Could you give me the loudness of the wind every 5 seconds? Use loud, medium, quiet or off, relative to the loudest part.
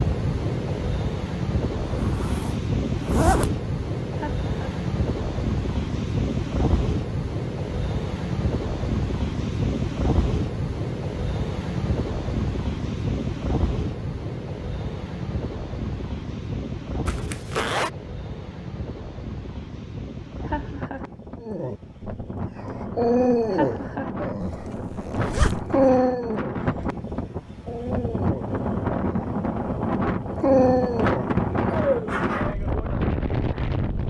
loud, loud, loud, medium, medium, loud, loud.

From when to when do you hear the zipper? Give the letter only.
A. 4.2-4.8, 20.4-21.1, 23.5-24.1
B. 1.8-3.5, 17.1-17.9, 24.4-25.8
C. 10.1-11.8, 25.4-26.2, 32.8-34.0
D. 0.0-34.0
B.